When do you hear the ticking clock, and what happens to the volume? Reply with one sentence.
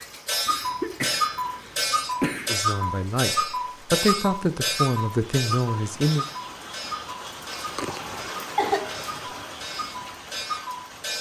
You can hear the ticking clock from 0.0 to 11.1 s, getting quieter.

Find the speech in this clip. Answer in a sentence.
You can hear the speech from 2.5 to 6.2 s.